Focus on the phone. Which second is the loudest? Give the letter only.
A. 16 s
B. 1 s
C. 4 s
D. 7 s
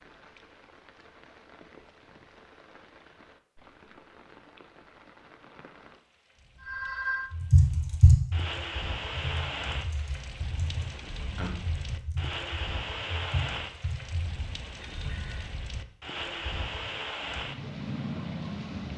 D.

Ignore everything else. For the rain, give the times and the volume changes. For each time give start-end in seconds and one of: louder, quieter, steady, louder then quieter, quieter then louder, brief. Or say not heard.
0.0-18.9 louder.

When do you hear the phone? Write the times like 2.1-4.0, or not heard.
6.6-7.3, 14.8-15.6.